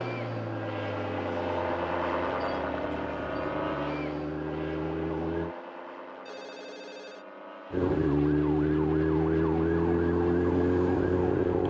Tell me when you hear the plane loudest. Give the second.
2 s.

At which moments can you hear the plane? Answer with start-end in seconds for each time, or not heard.
0.0-11.6.